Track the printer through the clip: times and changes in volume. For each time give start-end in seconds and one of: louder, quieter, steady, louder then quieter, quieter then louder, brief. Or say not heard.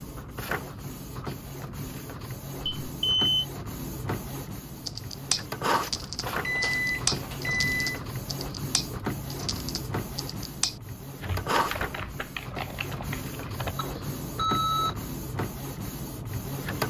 0.0-16.8 steady.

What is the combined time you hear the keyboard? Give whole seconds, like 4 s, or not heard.
9 s.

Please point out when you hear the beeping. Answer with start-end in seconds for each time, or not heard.
2.8-3.5, 6.2-8.0, 13.8-14.9.